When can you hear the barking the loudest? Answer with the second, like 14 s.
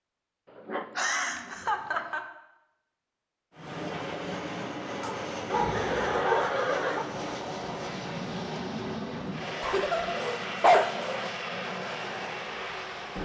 11 s.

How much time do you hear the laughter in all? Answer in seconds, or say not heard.
3 s.